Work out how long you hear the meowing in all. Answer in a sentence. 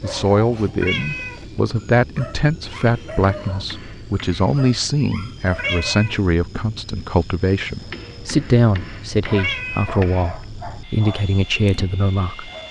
You can hear the meowing for 2 seconds altogether.